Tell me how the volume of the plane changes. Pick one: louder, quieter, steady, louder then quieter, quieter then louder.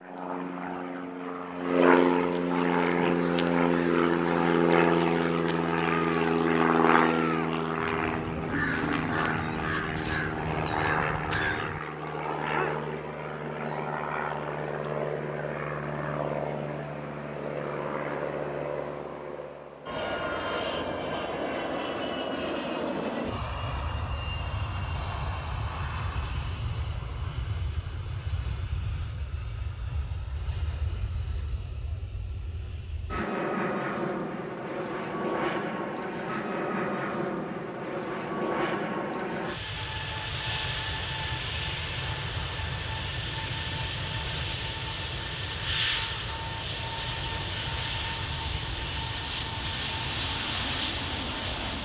quieter.